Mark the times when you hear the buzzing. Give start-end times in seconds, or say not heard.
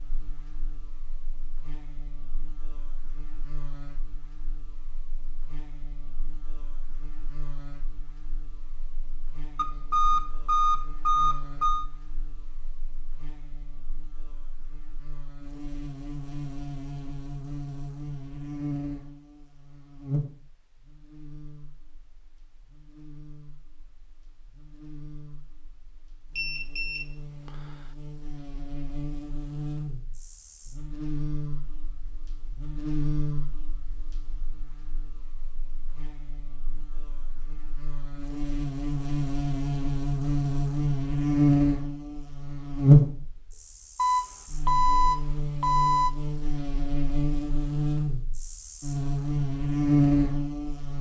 0.0-50.9.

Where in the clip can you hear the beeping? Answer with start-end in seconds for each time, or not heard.
9.6-11.8, 26.4-27.5, 44.0-46.1.